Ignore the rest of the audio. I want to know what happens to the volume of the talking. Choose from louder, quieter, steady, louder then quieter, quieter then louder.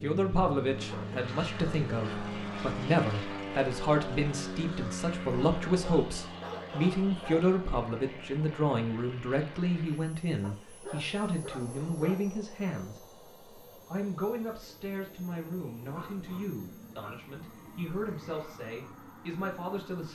quieter.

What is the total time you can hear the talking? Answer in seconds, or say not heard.
19 s.